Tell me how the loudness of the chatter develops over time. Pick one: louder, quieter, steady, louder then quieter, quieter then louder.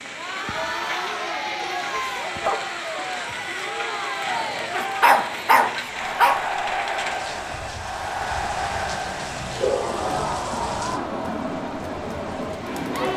steady.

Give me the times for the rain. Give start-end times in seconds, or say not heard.
0.0-13.1.